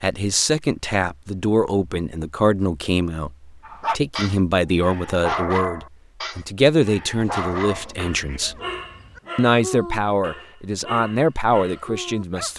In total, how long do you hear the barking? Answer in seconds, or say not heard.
9 s.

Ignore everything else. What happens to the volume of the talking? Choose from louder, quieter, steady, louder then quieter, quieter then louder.
steady.